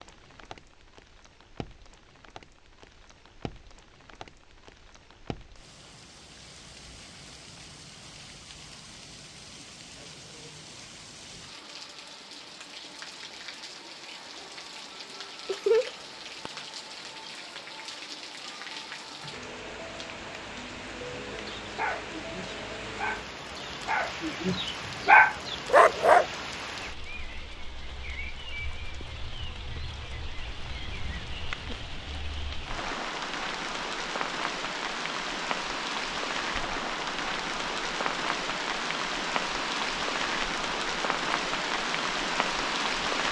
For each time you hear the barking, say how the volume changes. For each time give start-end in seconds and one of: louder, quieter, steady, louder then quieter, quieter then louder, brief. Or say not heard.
21.6-26.2 louder.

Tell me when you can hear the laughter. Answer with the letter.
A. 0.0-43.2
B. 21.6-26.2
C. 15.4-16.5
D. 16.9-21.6
C.